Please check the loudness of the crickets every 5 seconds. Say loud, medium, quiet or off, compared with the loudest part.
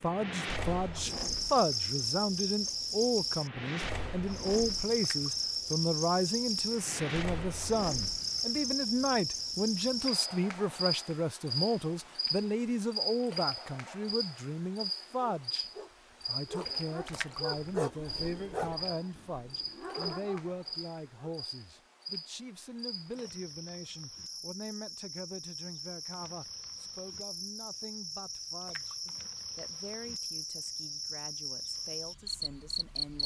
loud, loud, loud, medium, medium, medium, loud.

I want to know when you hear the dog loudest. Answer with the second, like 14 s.
18 s.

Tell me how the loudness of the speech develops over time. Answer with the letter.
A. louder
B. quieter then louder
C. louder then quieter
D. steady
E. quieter
E.